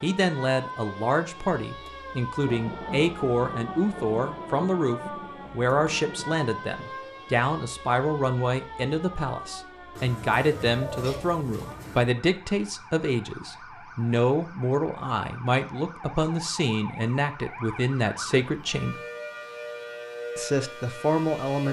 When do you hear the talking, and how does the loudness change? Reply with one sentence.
You can hear the talking from 0.0 to 19.0 s, at a steady volume; and briefly from 20.4 to 21.6 s.